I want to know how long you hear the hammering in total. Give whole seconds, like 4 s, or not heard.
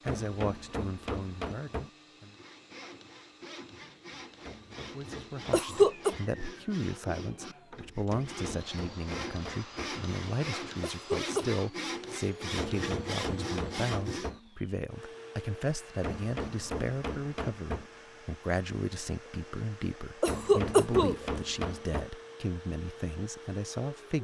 11 s.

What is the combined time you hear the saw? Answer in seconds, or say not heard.
12 s.